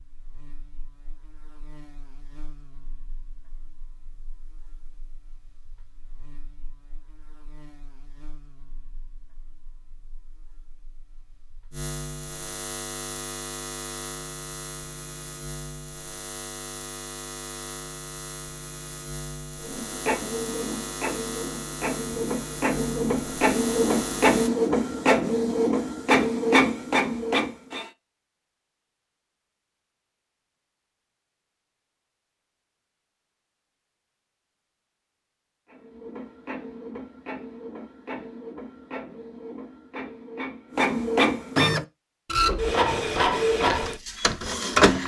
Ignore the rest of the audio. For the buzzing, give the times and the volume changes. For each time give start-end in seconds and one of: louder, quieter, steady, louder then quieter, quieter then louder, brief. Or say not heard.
0.0-24.5 louder.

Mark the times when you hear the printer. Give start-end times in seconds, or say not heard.
19.6-27.9, 35.6-45.0.